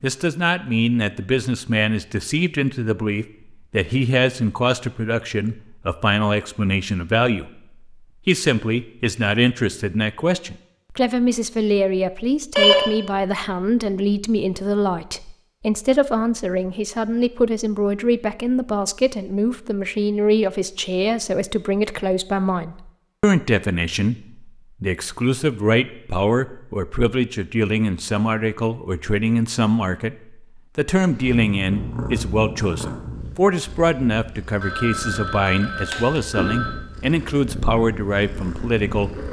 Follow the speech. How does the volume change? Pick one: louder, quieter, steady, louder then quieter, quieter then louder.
steady.